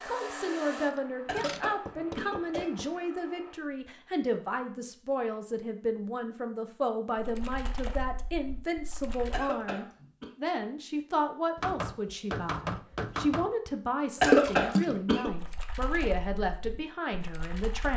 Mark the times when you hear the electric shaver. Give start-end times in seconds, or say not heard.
not heard.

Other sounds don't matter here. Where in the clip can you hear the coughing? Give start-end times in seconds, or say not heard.
1.2-2.7, 9.3-10.3, 14.2-15.3.